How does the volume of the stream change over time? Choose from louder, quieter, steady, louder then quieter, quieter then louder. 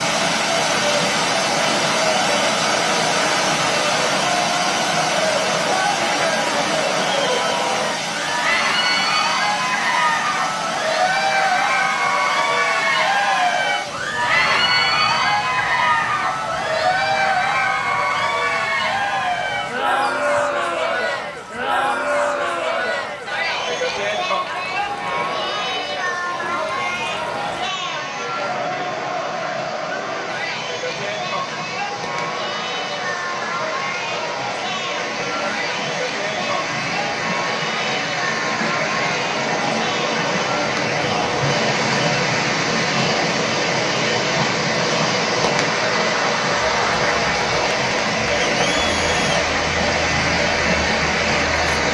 quieter then louder.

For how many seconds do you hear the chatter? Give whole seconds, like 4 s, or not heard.
52 s.